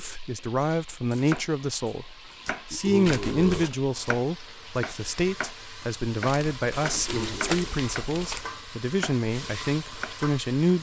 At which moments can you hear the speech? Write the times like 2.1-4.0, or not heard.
0.0-10.7.